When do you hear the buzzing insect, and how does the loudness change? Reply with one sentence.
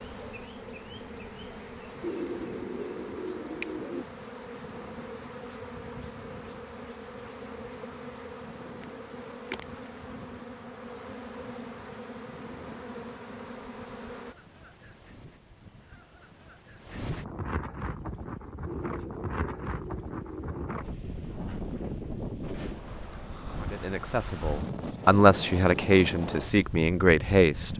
You can hear the buzzing insect from 0.0 to 14.3 s, at a steady volume.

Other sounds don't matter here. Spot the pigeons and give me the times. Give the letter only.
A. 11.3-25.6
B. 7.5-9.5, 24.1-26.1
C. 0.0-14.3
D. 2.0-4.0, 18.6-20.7
D.